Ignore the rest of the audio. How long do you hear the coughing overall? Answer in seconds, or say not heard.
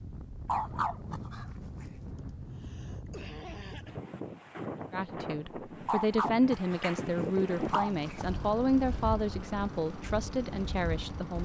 2 s.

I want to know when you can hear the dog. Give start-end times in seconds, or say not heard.
0.5-1.9, 5.8-8.3.